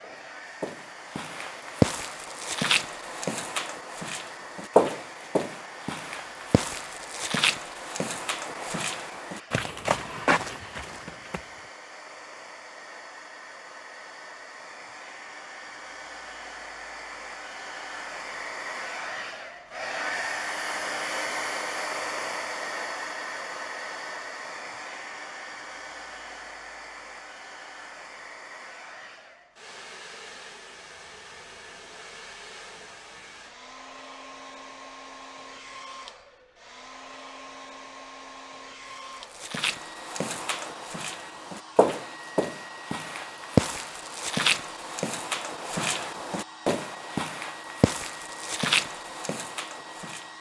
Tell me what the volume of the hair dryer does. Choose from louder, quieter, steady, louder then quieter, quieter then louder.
louder then quieter.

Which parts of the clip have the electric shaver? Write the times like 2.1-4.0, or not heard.
not heard.